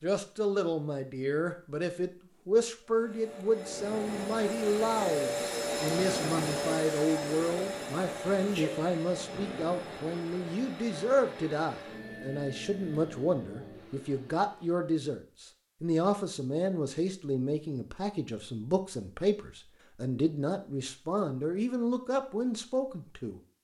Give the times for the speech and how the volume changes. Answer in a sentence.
The speech can be heard from 0.0 to 23.4 s, at a steady volume.